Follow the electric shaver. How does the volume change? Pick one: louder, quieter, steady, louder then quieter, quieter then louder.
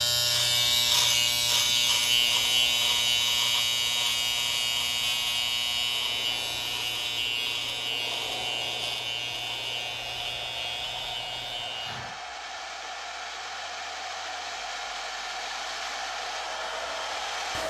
quieter.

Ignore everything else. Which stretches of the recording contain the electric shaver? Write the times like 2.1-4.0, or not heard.
0.0-12.2.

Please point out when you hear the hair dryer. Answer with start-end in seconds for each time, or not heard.
0.0-17.6.